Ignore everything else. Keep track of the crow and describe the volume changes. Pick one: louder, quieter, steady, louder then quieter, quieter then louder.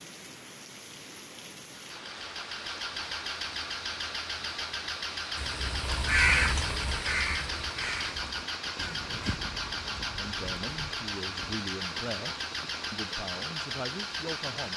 quieter.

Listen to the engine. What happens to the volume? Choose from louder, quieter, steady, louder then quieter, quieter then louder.
steady.